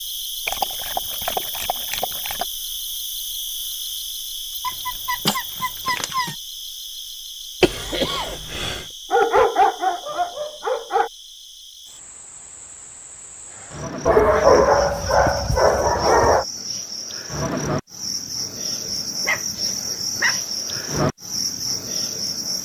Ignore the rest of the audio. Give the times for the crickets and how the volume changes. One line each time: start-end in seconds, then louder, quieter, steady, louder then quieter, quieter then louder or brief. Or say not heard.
0.0-22.6 quieter then louder.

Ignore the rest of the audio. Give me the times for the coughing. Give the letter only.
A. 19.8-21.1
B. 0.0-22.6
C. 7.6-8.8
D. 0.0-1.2
C.